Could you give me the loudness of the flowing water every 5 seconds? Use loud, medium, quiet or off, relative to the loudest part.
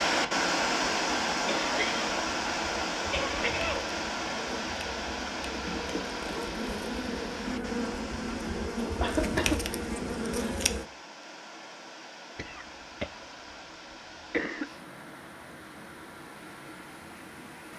loud, medium, quiet, quiet.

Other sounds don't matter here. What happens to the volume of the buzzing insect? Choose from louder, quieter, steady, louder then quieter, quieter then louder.
louder.